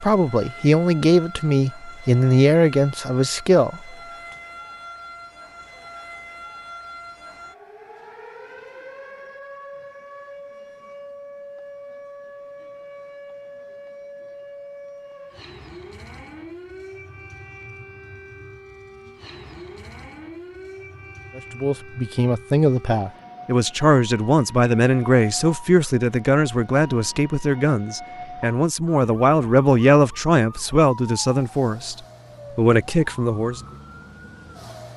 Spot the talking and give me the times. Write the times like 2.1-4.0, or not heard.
0.0-4.0, 21.4-33.6.